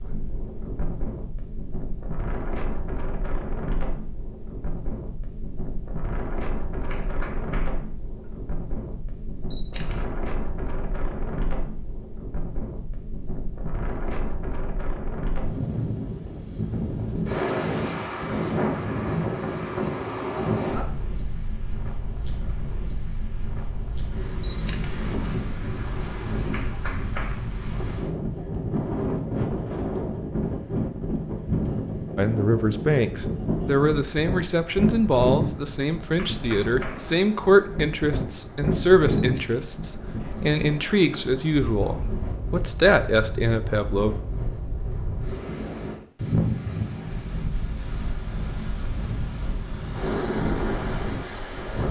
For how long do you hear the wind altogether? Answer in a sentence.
The wind can be heard for 52 seconds in total.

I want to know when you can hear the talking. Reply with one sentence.
You can hear the talking from 32.1 to 44.1 s.